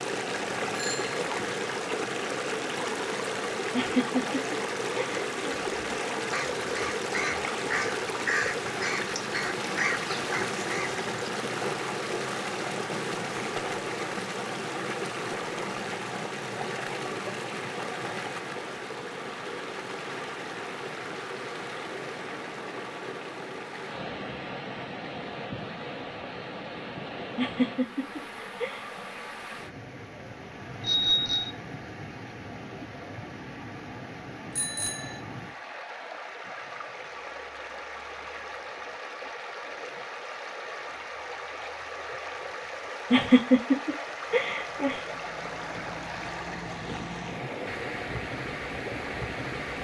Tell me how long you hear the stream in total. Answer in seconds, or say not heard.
50 s.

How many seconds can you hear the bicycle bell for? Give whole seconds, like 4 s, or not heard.
2 s.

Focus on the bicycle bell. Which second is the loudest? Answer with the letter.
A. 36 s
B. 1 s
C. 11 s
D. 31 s
D.